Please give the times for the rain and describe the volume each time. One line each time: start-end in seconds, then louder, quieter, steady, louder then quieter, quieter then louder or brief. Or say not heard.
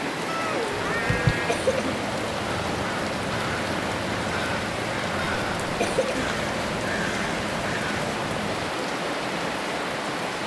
0.0-10.4 steady.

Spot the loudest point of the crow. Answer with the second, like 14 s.
1 s.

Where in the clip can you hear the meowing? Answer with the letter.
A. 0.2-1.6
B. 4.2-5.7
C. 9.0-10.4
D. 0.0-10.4
A.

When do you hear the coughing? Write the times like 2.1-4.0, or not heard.
1.4-2.0, 5.8-6.3.